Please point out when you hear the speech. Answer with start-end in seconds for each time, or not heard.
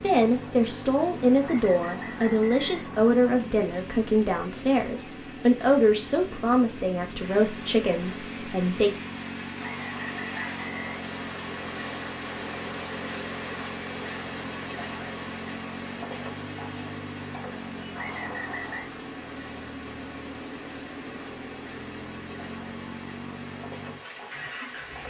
0.0-8.9.